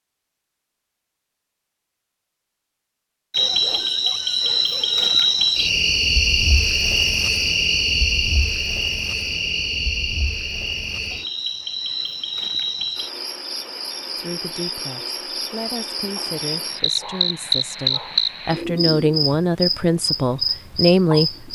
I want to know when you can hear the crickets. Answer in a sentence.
The crickets can be heard from 3.3 to 21.5 s.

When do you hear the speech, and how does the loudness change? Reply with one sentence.
You can hear the speech from 14.2 to 21.5 s, getting louder.